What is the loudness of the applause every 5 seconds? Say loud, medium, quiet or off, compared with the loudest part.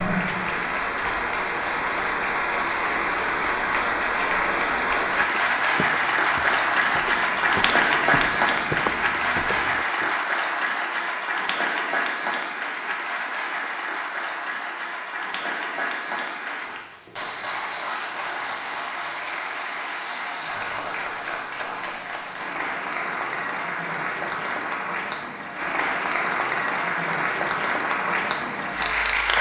loud, loud, medium, medium, medium, loud.